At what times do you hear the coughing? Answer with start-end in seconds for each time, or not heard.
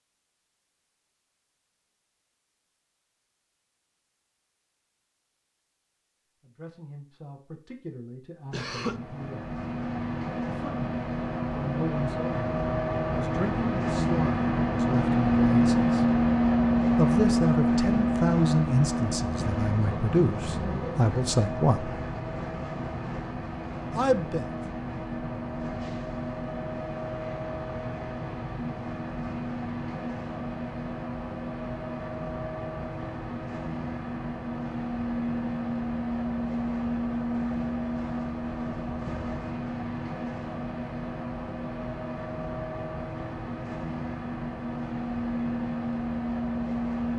8.5-9.0.